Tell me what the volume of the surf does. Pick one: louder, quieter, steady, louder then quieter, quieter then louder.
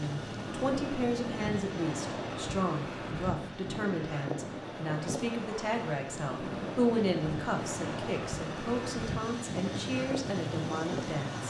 steady.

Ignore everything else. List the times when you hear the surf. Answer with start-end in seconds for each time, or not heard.
0.0-11.4.